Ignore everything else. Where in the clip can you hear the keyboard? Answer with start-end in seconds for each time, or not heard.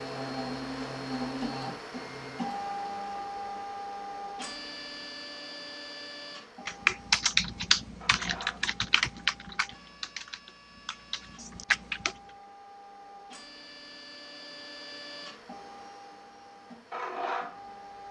6.7-12.2.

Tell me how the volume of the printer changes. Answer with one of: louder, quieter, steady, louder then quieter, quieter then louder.
quieter then louder.